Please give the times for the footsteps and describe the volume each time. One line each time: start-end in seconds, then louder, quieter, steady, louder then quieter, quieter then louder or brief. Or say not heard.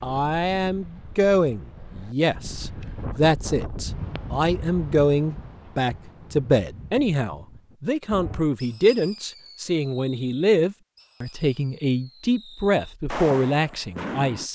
not heard.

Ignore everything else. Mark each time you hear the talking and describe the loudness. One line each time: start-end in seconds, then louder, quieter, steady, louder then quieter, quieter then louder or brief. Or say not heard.
0.0-14.4 steady.